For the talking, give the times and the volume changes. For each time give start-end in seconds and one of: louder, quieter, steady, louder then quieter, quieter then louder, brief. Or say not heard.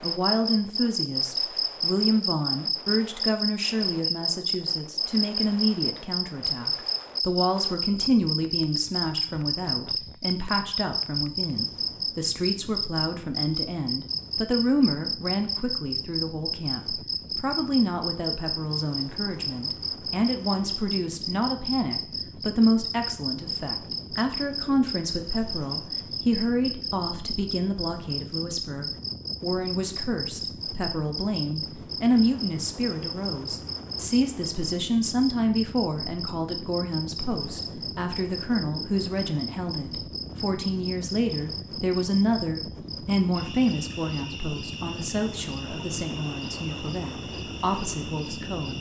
0.0-48.7 steady.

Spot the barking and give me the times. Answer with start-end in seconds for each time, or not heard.
not heard.